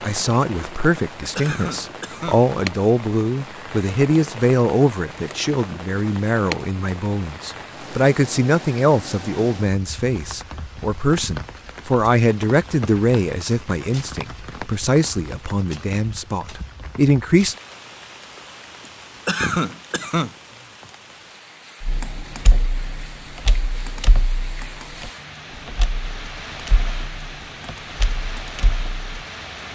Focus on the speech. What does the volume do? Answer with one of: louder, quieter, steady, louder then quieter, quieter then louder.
steady.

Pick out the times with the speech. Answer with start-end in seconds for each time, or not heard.
0.0-17.6.